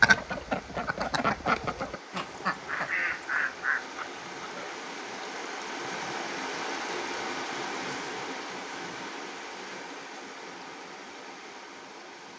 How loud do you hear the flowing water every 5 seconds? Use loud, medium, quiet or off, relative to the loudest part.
medium, loud, medium.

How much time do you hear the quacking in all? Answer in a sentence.
The quacking can be heard for 5 seconds in total.